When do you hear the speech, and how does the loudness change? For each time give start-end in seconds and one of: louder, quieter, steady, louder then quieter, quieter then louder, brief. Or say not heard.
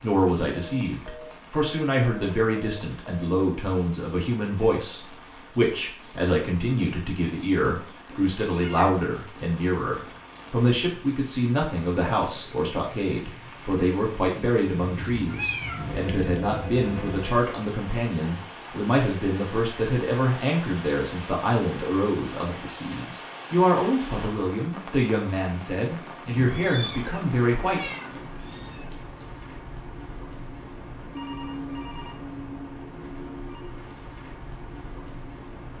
0.0-27.9 steady.